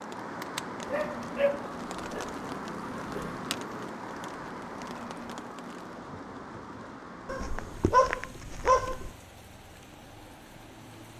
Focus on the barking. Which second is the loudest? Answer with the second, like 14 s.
8 s.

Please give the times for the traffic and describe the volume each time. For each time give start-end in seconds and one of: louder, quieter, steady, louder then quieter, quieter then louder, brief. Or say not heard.
0.0-11.1 quieter.